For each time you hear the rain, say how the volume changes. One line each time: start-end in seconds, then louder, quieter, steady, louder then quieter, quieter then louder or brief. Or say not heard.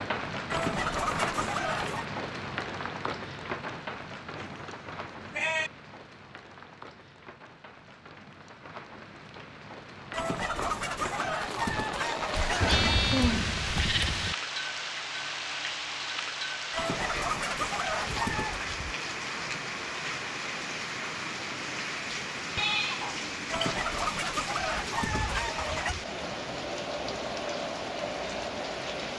0.0-29.1 quieter then louder.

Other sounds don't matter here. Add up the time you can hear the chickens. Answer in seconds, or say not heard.
9 s.